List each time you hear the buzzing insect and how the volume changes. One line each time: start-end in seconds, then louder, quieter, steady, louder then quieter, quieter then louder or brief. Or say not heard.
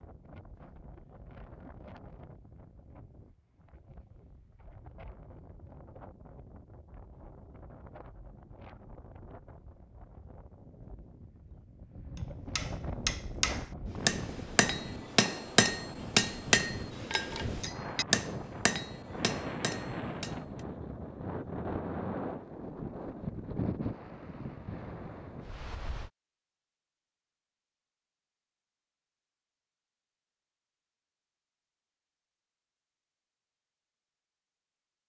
not heard.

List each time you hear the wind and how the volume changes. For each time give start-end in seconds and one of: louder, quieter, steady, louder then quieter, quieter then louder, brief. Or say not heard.
0.0-26.1 louder.